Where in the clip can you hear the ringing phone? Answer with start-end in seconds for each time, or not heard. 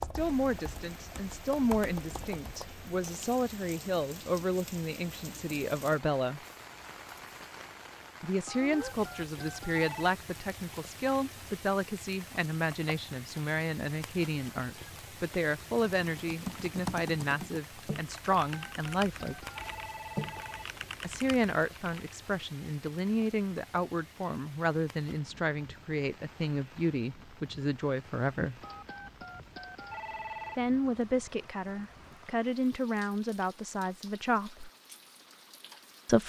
8.4-10.1, 18.5-20.8, 28.6-30.6.